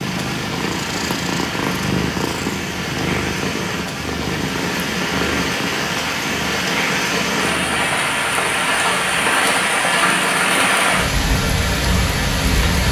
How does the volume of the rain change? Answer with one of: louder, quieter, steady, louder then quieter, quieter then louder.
louder.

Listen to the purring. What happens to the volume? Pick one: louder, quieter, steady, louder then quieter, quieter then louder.
quieter.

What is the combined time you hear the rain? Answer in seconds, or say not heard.
13 s.